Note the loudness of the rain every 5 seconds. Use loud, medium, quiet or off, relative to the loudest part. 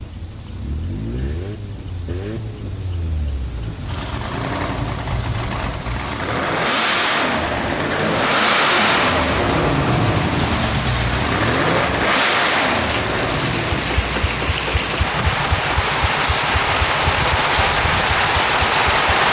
quiet, medium, medium, loud.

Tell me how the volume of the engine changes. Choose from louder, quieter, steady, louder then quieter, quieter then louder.
louder then quieter.